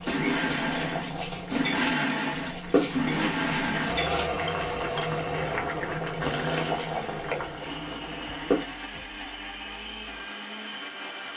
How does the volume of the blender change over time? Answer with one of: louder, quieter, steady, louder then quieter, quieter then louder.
quieter.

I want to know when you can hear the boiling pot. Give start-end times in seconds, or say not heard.
0.0-8.8.